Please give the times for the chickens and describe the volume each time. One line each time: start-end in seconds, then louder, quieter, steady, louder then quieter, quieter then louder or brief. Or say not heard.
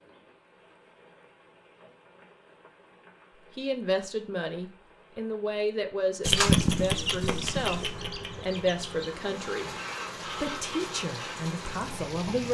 6.2-12.4 quieter.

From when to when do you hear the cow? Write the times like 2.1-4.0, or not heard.
not heard.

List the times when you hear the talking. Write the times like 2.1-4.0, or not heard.
3.5-12.4.